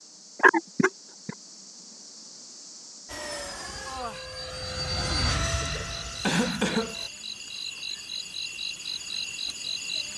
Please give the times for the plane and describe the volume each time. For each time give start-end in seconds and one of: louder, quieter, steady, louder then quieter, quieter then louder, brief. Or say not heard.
3.0-7.1 louder then quieter.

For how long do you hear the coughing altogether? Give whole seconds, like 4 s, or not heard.
2 s.